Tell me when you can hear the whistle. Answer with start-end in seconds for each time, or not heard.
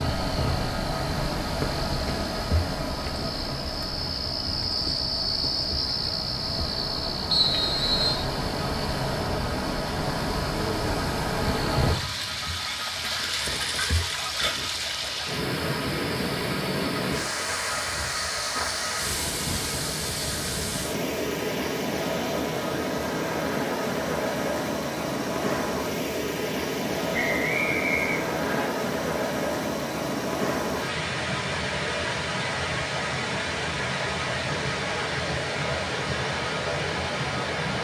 7.3-8.2, 27.1-28.6.